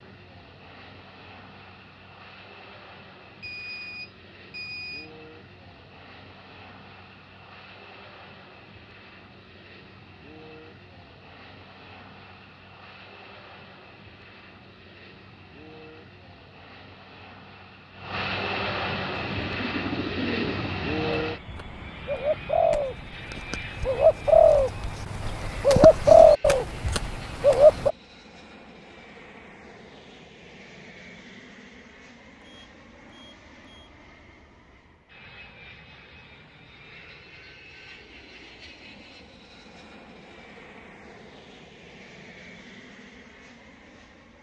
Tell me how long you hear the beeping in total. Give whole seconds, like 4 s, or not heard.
3 s.